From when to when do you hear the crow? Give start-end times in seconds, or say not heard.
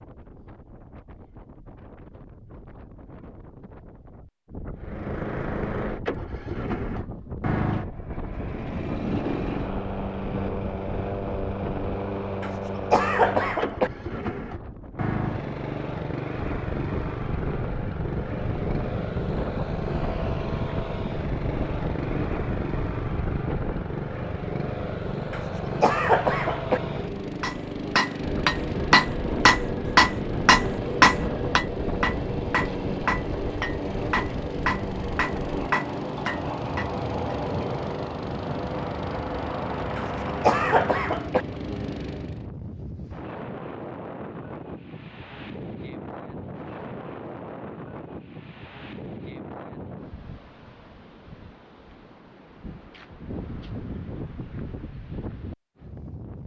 not heard.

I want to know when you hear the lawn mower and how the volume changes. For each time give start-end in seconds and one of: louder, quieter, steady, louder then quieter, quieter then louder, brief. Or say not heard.
4.8-42.5 steady.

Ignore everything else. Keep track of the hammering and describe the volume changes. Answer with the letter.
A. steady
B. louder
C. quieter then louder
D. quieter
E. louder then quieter
D.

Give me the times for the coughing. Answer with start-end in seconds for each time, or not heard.
12.4-13.9, 25.3-26.8, 40.0-41.5.